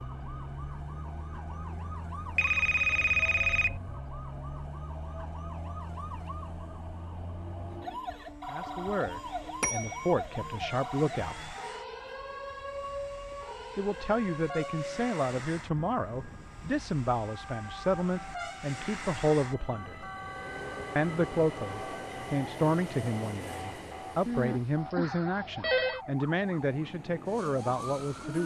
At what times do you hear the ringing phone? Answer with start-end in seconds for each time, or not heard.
2.4-3.8, 9.6-10.2, 24.2-26.0.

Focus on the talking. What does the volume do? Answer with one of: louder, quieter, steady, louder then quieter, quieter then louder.
steady.